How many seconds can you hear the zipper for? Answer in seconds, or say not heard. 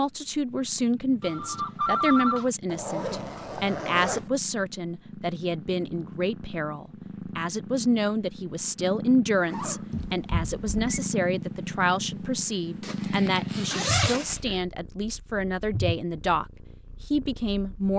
4 s.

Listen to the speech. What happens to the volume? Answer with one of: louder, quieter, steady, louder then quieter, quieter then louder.
steady.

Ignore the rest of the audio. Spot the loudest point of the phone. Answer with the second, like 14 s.
2 s.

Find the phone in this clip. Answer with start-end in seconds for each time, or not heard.
1.2-2.5, 9.9-10.9.